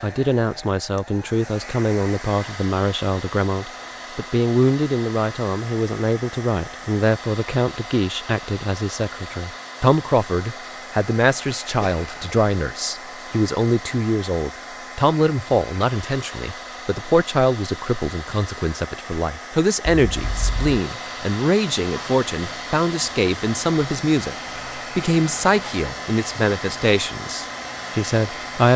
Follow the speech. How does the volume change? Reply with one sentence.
The volume of the speech stays about the same.